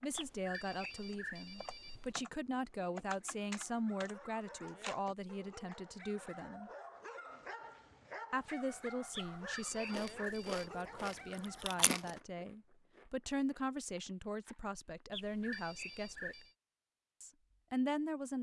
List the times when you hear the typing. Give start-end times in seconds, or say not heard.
0.0-6.5.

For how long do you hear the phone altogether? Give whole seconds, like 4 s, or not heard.
5 s.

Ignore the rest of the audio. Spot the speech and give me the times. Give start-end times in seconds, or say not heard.
0.0-6.7, 8.3-16.4, 17.2-18.3.